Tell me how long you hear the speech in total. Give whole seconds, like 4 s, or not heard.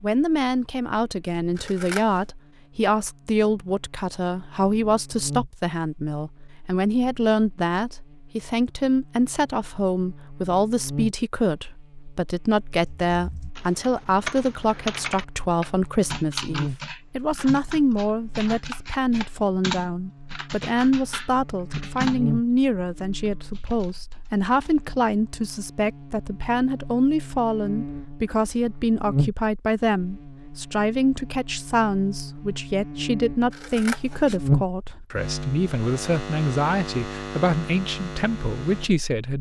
39 s.